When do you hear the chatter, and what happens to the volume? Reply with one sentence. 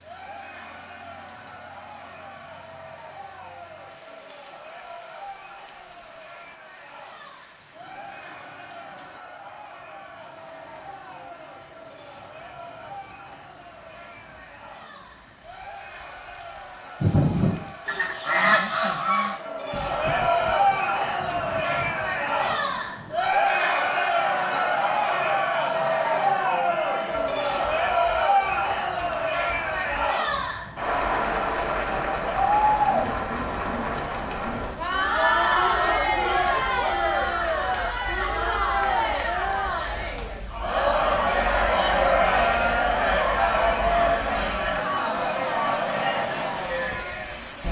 The chatter can be heard from 0.0 to 47.6 s, getting louder.